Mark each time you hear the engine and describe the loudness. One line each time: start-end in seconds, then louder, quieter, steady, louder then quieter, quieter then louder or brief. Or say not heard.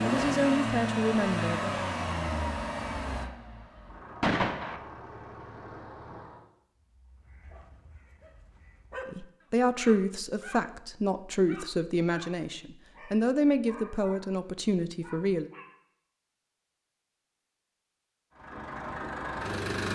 0.0-6.5 quieter
18.3-19.9 brief.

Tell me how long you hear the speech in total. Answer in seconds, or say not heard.
8 s.